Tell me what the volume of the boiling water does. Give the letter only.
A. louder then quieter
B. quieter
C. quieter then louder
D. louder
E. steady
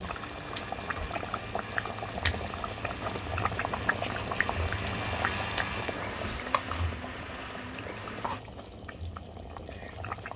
B.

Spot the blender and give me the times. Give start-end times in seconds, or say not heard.
0.0-8.4.